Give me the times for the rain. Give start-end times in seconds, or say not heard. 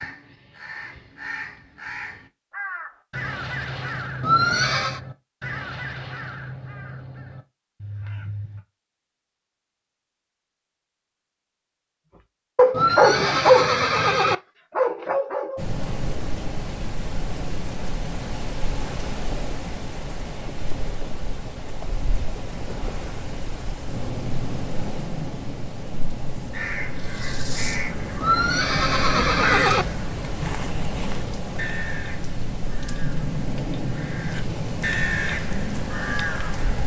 15.6-36.8.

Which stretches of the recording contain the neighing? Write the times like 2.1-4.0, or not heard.
4.2-5.0, 12.7-14.3, 28.2-29.9.